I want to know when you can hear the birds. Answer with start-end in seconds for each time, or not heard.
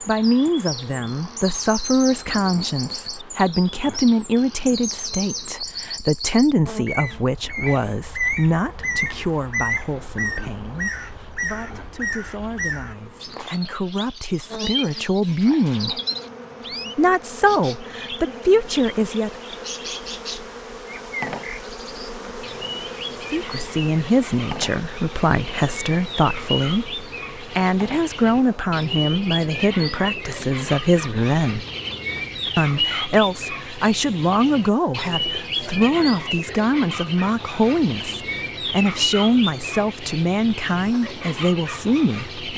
0.0-42.5.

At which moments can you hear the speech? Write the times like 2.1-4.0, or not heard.
0.1-16.0, 16.9-19.3, 23.2-31.6, 32.5-42.5.